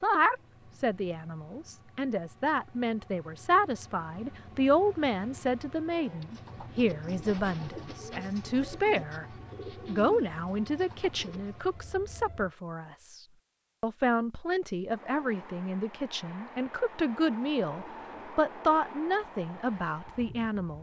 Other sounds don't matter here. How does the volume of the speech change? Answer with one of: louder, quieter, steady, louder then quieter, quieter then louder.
steady.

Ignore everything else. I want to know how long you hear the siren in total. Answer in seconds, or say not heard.
not heard.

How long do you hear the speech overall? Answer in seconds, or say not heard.
20 s.